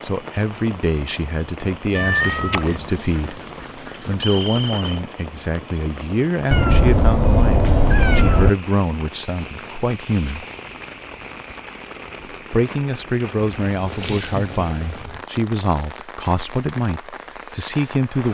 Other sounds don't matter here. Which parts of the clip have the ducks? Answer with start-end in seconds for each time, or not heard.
2.8-5.0.